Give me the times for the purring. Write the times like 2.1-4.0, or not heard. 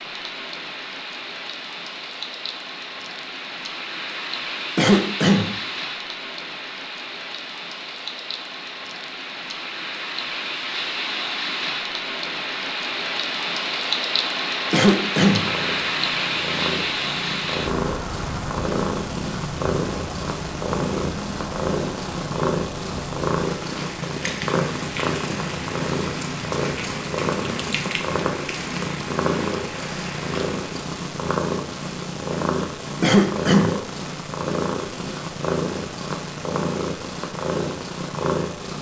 15.2-38.7.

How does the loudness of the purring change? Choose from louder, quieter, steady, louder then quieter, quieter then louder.
steady.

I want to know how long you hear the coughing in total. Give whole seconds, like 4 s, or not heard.
2 s.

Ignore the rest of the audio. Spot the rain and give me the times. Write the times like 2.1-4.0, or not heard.
0.0-30.7.